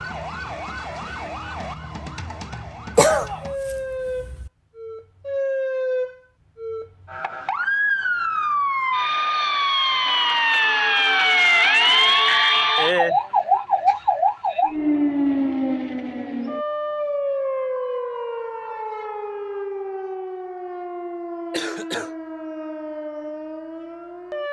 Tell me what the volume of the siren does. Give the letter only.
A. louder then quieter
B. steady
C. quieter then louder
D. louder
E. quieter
A.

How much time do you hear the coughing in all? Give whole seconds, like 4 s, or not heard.
2 s.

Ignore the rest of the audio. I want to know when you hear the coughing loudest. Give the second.
3 s.